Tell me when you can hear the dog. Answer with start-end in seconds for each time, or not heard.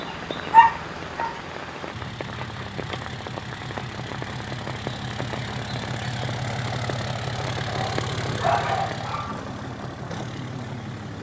0.5-1.3, 7.7-9.4.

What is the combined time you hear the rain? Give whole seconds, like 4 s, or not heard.
9 s.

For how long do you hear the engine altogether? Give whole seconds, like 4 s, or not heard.
11 s.